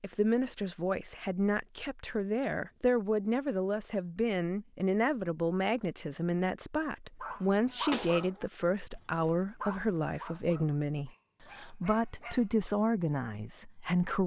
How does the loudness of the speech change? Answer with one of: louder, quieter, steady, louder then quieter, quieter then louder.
steady.